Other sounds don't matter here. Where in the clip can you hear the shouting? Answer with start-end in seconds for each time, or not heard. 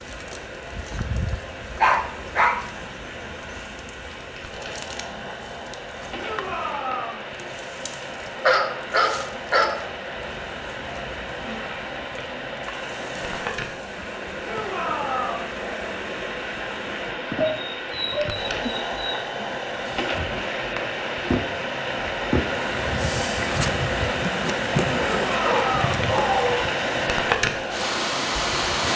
6.2-7.2, 14.4-15.5, 25.1-25.9.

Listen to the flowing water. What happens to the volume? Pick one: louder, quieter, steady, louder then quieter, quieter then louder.
louder.